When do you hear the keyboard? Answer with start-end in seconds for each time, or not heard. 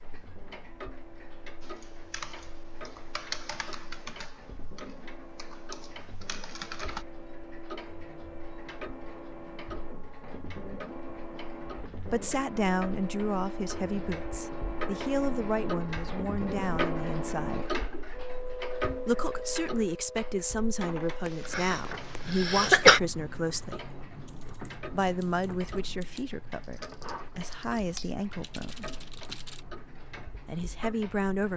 1.6-7.0, 24.2-29.6.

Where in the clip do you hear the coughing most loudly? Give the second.
23 s.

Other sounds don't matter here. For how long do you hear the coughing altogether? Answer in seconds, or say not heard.
2 s.